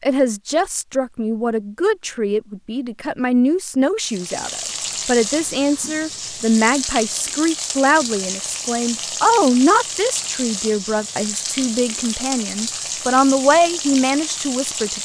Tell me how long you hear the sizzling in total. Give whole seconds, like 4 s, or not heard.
11 s.